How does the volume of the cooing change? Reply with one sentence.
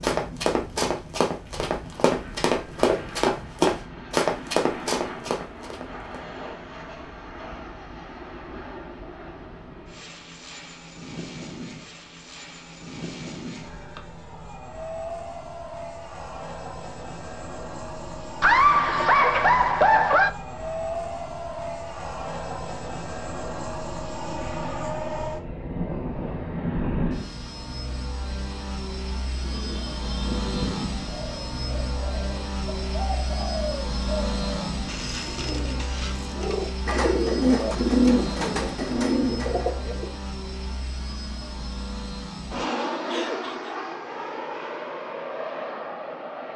The volume of the cooing goes up.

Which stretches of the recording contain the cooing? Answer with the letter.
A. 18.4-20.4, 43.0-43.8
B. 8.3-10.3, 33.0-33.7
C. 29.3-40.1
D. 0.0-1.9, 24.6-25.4
C.